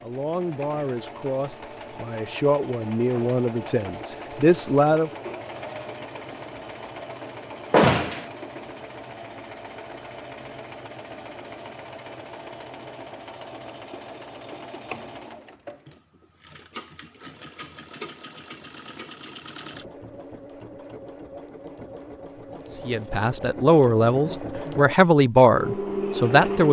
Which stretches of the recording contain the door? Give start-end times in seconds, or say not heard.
7.7-8.2.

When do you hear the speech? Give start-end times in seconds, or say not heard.
0.0-5.1, 22.9-26.6.